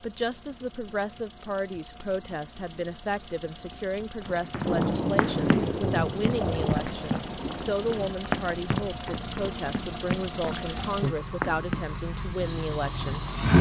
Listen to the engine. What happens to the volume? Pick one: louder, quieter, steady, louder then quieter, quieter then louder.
louder.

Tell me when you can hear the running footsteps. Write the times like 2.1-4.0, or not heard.
4.2-11.8.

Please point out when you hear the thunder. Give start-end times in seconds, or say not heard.
4.7-8.2.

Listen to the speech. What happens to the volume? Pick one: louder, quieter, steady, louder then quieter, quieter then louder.
steady.